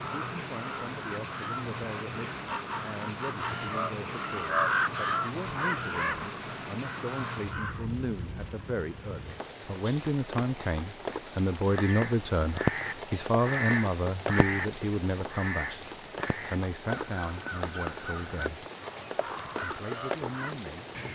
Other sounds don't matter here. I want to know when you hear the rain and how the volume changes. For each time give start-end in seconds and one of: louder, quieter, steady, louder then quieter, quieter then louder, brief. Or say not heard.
0.0-21.1 steady.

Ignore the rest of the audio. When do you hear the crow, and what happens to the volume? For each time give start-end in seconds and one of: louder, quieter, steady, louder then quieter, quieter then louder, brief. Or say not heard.
0.0-7.8 louder then quieter
11.7-20.6 quieter.